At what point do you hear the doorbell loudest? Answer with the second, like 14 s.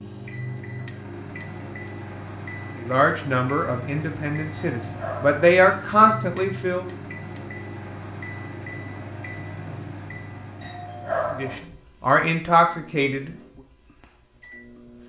11 s.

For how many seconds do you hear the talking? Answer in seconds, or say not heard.
6 s.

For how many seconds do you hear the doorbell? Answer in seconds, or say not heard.
2 s.